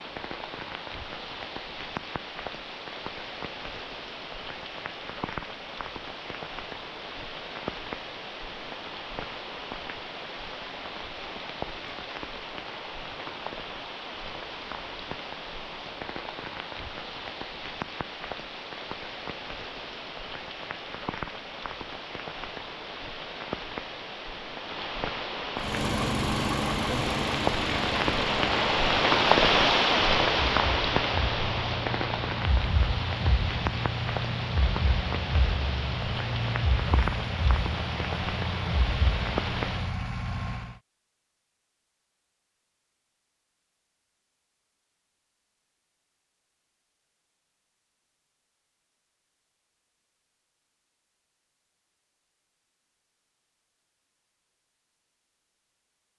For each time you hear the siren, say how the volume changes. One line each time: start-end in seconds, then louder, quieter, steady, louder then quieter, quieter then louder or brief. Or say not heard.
not heard.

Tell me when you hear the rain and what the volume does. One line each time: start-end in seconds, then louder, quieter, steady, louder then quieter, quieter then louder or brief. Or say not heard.
0.0-40.0 louder then quieter.